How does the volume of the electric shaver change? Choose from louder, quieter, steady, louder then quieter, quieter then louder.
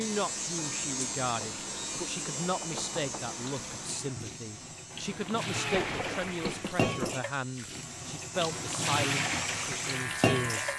quieter then louder.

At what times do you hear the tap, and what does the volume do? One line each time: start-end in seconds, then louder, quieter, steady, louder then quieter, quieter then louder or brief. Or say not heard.
0.0-10.7 louder.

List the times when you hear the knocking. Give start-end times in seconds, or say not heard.
2.6-3.4, 5.5-7.2.